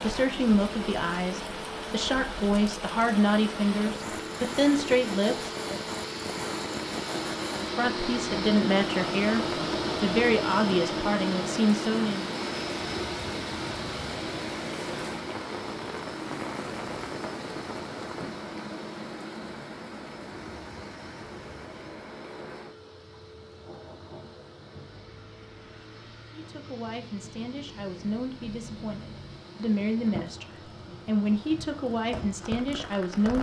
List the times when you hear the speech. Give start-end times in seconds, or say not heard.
0.0-5.5, 7.6-12.3, 26.3-33.3.